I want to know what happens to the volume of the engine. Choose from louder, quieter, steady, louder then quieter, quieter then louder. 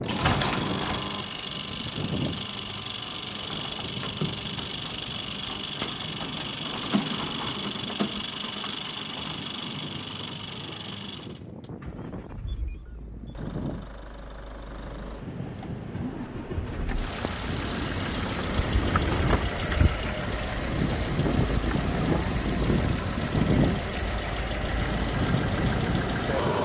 quieter then louder.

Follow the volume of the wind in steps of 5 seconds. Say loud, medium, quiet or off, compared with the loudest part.
medium, quiet, quiet, medium, loud, loud.